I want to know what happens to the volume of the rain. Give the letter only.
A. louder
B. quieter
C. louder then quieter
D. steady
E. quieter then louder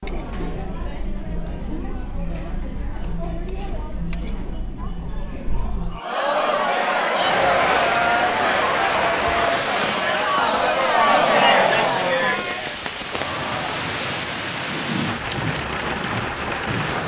E.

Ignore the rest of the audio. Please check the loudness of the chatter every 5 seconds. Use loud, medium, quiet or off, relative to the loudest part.
quiet, loud, loud, off.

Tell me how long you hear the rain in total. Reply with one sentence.
The rain can be heard for 10 seconds in total.